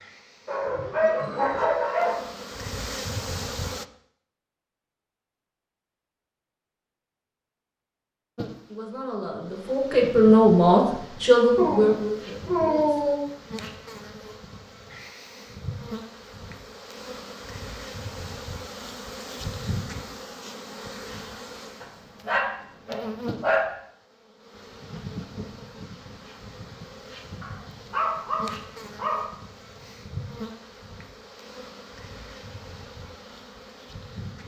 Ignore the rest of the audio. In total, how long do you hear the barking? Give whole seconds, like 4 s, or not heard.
7 s.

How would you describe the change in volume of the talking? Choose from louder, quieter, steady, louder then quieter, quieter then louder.
louder then quieter.